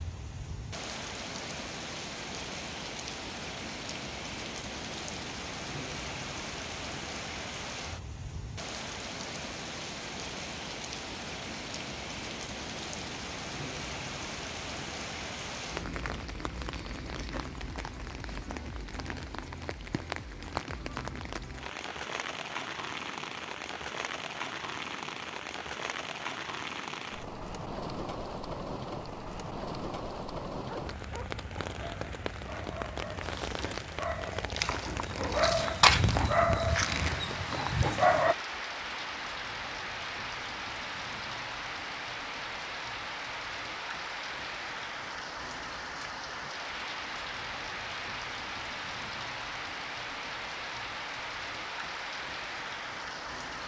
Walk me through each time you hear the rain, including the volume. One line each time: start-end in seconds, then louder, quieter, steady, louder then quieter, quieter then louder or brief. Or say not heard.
0.0-53.6 steady.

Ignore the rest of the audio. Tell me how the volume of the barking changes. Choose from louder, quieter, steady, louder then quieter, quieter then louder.
louder then quieter.